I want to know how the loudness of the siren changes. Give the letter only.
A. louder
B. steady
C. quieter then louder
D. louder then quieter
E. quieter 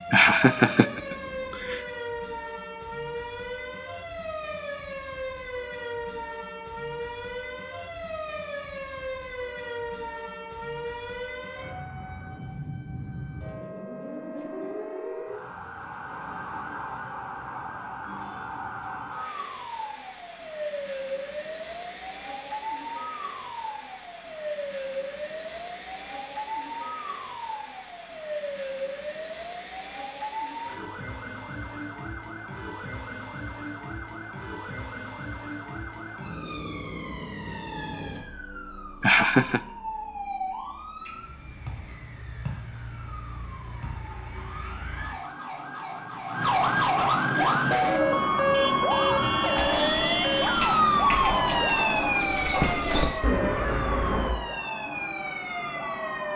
A.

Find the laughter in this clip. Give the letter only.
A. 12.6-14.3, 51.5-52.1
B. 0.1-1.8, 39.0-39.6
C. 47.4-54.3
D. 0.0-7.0
B.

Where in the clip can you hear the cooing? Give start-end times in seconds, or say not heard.
47.4-54.3.